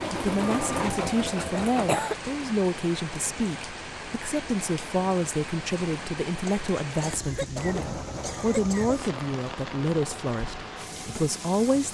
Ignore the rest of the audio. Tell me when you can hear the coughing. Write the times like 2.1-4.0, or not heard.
1.5-2.1, 6.5-9.1.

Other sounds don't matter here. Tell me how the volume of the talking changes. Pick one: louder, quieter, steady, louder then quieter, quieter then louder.
steady.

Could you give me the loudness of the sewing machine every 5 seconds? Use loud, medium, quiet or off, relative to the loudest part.
loud, medium, quiet.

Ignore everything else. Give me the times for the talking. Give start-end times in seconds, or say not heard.
0.1-11.8.